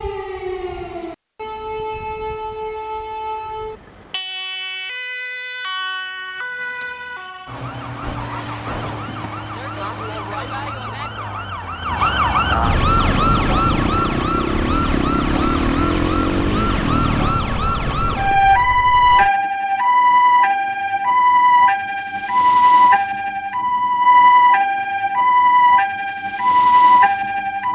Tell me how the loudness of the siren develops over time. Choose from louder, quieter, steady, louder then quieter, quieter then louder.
louder.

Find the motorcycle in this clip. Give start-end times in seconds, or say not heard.
13.1-19.3.